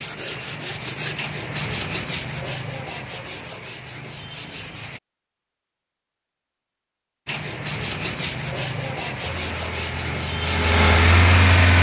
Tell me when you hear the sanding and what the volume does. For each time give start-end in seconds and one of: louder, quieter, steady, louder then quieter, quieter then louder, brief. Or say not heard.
0.0-5.0 quieter
7.2-11.7 steady.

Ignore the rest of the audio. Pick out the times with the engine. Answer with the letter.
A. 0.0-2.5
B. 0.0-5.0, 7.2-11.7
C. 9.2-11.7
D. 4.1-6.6
C.